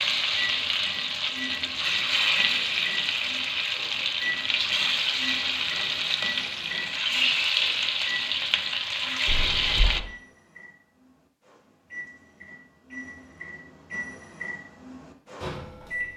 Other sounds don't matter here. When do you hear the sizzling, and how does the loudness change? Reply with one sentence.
You can hear the sizzling from 0.0 to 10.0 s, at a steady volume.